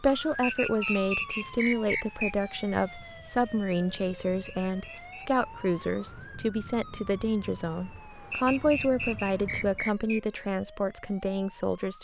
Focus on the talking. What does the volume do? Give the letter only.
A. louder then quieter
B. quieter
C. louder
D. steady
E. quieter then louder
D.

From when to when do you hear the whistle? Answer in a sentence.
The whistle can be heard from 0.4 to 2.4 s, from 4.7 to 5.2 s and from 8.3 to 10.2 s.